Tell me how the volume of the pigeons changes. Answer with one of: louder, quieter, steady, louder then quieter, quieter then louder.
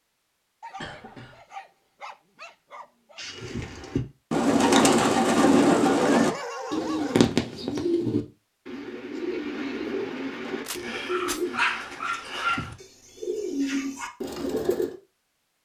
quieter.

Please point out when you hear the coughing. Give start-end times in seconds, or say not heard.
0.8-1.4.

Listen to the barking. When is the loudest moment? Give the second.
12 s.